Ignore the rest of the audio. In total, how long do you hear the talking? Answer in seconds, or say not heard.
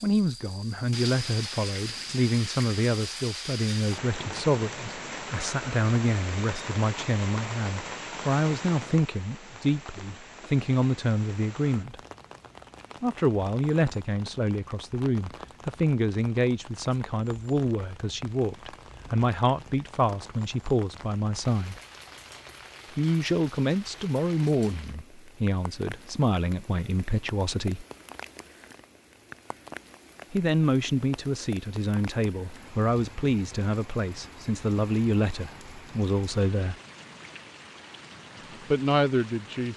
33 s.